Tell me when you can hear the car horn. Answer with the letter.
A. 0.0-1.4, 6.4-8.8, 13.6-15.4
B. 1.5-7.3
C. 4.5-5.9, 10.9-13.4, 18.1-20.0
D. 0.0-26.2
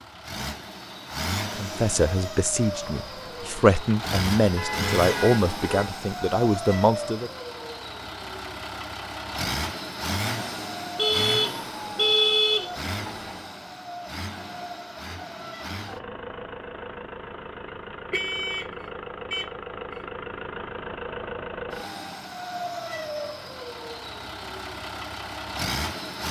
C.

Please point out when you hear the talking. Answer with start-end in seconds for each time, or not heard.
1.5-7.3.